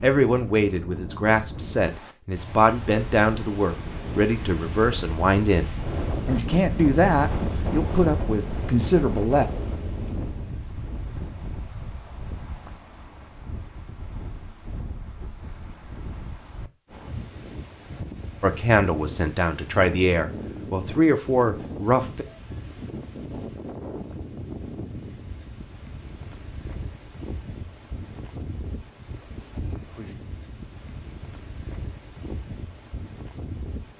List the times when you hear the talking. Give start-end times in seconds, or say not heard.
0.0-9.4, 18.4-22.2.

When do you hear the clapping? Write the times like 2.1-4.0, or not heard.
not heard.